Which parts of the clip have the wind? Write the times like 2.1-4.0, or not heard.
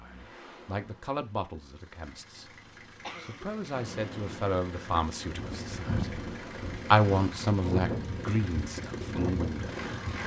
3.7-10.2.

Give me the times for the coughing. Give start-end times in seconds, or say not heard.
3.0-3.8.